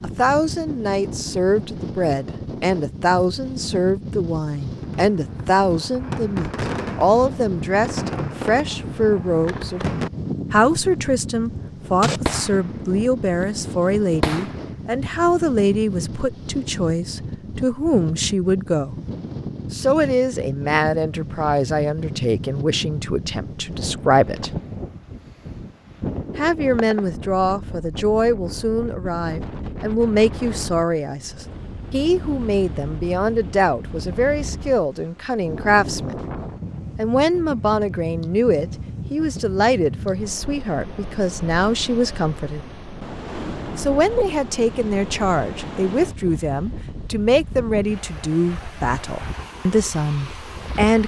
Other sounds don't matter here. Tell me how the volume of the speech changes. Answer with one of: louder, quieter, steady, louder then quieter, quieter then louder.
steady.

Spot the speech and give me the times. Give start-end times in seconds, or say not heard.
0.0-9.9, 10.5-18.9, 19.7-24.5, 26.4-36.2, 37.0-42.6, 43.8-51.0.